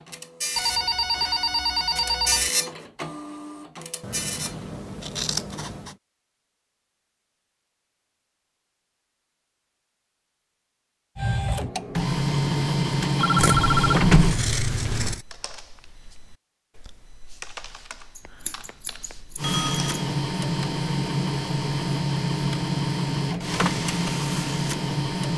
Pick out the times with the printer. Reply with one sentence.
The printer can be heard from 0.0 to 4.7 s, from 11.2 to 14.4 s and from 19.4 to 25.3 s.